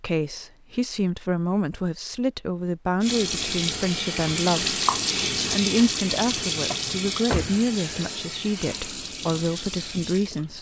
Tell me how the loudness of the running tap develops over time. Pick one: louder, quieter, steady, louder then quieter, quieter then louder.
quieter.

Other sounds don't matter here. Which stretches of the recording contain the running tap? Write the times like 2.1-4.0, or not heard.
3.0-10.5.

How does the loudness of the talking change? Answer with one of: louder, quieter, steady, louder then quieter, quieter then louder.
steady.